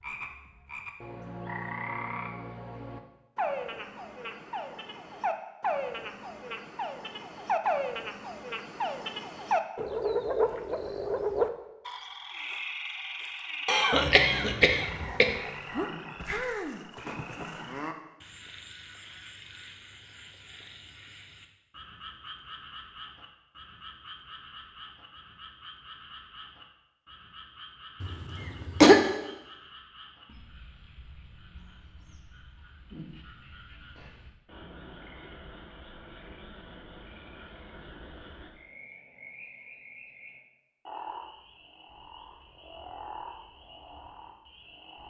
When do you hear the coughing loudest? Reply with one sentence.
The volume of the coughing peaks at 29 seconds.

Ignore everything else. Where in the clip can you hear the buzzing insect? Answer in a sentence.
The buzzing insect can't be heard in this clip.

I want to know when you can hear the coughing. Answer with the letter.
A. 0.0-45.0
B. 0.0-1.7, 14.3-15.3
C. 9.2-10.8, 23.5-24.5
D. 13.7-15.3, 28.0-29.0
D.